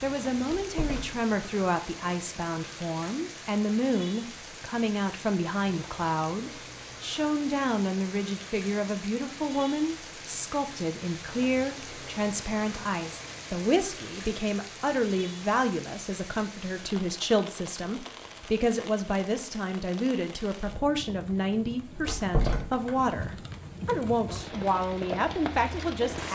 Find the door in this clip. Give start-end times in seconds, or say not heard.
0.6-1.1, 22.1-22.9.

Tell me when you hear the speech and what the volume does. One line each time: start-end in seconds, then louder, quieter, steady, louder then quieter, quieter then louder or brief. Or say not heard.
0.0-26.2 steady.